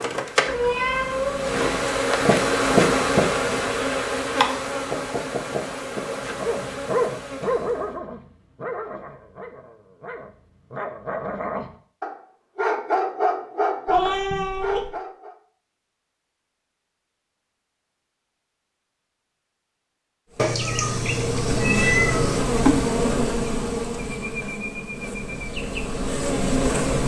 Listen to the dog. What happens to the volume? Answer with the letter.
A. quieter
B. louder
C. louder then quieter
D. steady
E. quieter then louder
E.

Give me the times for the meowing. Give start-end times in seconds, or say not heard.
0.5-1.7, 13.8-14.9, 20.4-22.4.